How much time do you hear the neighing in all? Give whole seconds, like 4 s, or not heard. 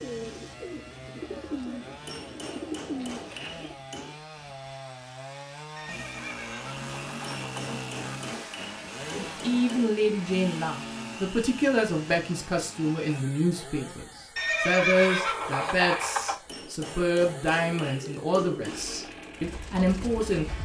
4 s.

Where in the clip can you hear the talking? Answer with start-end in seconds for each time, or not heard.
9.2-20.5.